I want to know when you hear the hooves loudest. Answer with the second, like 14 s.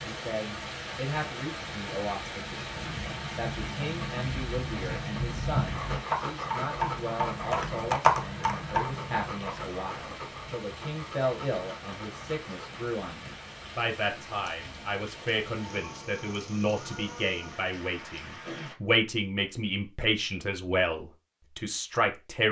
8 s.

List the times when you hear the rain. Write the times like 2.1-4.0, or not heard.
0.0-18.8.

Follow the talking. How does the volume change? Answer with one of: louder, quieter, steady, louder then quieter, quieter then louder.
louder.